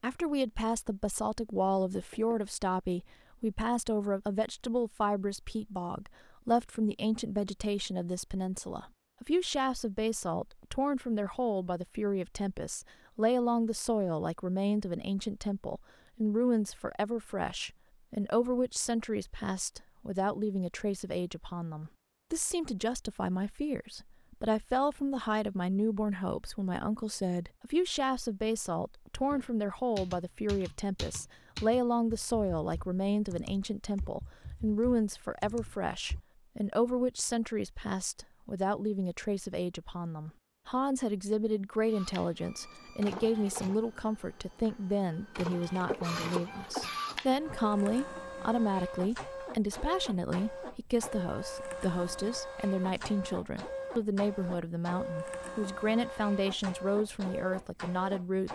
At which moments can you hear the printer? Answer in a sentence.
The printer can be heard from 41.9 to 58.5 s.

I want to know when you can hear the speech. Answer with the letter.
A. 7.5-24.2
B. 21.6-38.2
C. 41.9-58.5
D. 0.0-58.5
D.